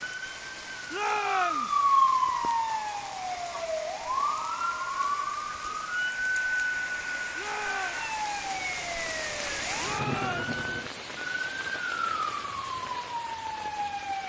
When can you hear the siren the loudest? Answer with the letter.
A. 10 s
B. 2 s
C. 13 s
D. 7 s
B.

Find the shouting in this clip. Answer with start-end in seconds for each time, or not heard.
0.9-1.8, 7.3-8.0, 9.8-10.5.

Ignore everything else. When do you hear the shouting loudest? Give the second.
1 s.